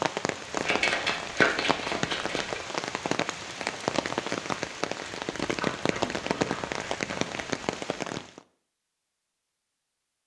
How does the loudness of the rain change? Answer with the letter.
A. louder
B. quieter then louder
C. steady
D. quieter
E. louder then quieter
C.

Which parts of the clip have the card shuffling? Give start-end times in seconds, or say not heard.
0.6-2.6, 5.5-7.6.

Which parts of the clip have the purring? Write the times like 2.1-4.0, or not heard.
not heard.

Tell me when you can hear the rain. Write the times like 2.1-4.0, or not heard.
0.0-8.4.